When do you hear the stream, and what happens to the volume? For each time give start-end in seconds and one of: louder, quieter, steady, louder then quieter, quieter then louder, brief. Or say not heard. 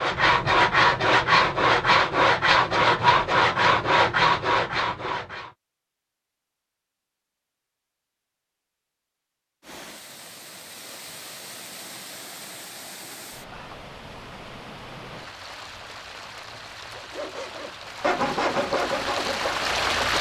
9.6-20.1 louder.